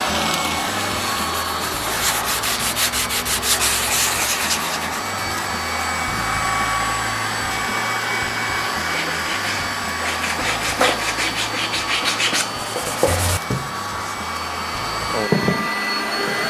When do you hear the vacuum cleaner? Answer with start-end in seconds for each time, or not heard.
0.0-16.4.